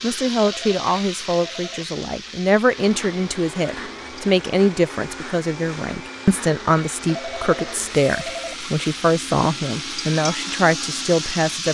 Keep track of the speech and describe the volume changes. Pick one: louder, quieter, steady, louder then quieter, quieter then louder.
steady.